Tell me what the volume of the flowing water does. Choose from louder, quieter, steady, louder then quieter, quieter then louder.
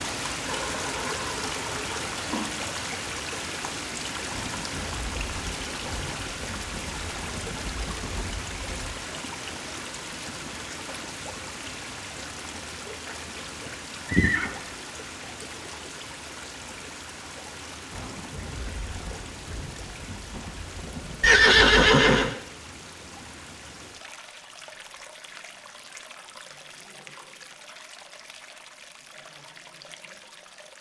quieter.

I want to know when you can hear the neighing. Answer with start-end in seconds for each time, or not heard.
0.4-2.5, 13.7-14.6, 21.2-22.4.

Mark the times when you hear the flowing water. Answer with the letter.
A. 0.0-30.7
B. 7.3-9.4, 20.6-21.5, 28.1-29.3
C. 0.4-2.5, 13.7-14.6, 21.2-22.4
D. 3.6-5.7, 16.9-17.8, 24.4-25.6
A.